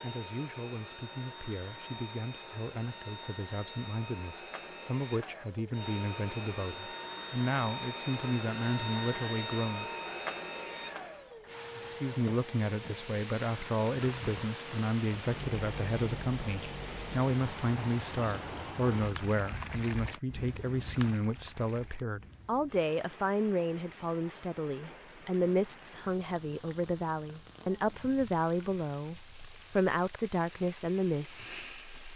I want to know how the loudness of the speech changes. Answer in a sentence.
The volume of the speech goes up.